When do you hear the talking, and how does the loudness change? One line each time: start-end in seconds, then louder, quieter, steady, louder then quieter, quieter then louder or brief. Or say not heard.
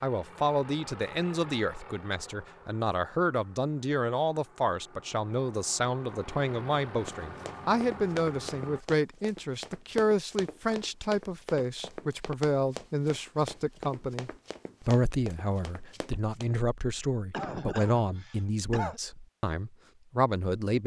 0.0-20.8 steady.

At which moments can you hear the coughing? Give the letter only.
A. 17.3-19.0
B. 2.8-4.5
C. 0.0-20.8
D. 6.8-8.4
A.